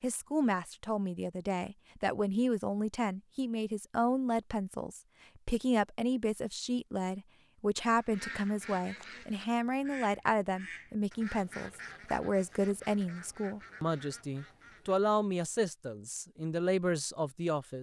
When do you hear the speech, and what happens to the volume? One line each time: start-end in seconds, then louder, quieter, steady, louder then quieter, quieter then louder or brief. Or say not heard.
0.0-17.7 steady.